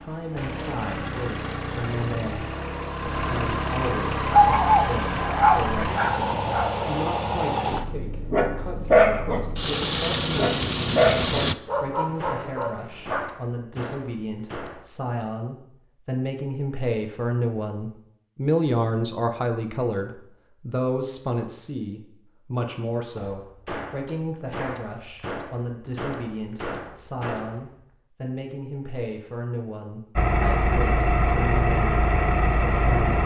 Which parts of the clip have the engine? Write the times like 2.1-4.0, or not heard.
0.0-11.6, 30.1-33.2.